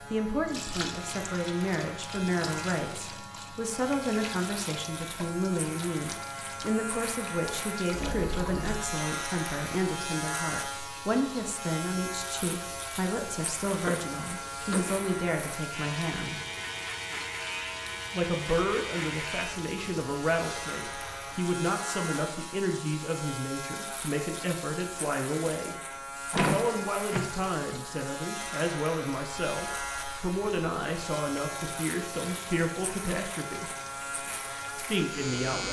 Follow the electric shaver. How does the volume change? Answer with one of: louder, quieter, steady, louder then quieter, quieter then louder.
steady.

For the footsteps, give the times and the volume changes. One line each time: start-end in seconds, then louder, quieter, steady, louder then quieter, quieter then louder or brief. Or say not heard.
not heard.